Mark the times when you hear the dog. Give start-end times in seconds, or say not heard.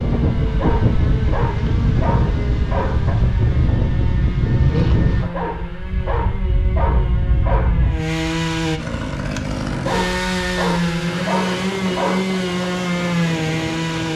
0.5-3.1, 5.2-7.9, 9.7-12.4.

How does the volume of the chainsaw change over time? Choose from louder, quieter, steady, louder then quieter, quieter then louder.
louder.